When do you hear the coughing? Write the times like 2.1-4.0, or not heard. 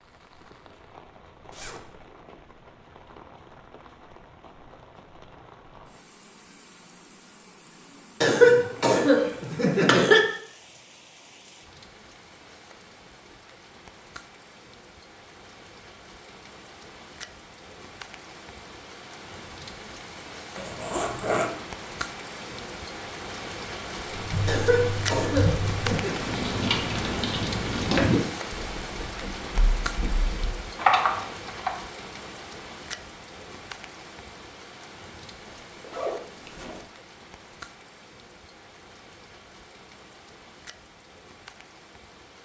8.2-10.2, 24.4-26.2.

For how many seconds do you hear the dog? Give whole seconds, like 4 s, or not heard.
not heard.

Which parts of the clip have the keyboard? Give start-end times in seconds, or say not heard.
24.1-31.7.